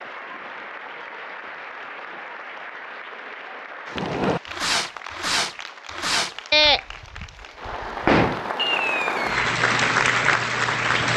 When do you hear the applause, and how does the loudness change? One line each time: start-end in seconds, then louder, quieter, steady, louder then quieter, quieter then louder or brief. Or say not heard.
0.0-11.1 louder.